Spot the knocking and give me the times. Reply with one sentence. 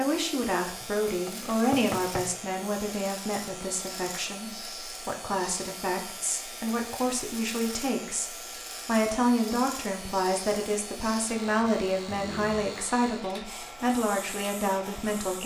You can hear the knocking from 0.8 to 2.3 s.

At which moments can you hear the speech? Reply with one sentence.
You can hear the speech from 0.0 to 15.4 s.